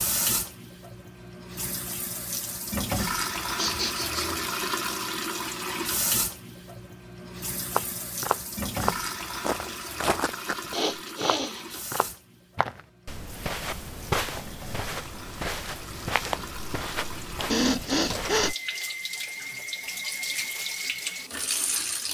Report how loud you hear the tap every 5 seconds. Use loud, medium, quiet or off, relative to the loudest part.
loud, loud, medium, medium, loud.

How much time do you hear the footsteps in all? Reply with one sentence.
You can hear the footsteps for 11 seconds altogether.